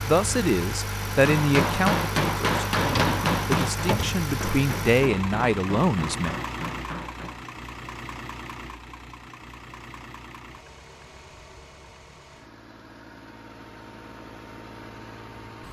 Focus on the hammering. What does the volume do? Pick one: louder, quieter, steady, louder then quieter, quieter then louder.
quieter.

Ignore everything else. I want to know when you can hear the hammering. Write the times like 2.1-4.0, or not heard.
1.1-7.5.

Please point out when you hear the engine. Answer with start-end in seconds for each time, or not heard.
0.0-15.6.